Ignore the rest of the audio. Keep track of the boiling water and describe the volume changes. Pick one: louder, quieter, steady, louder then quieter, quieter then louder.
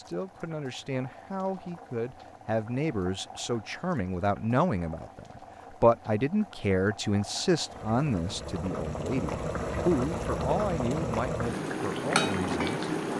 louder.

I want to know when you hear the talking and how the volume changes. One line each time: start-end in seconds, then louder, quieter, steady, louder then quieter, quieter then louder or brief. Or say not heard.
0.0-12.8 louder then quieter.